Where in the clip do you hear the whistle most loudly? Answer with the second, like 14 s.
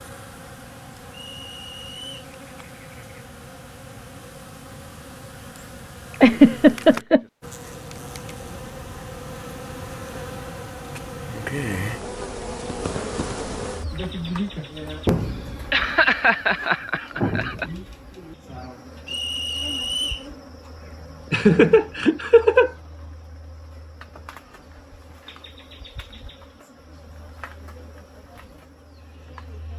20 s.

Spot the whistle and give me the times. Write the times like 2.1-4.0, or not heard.
1.1-2.2, 19.1-20.2.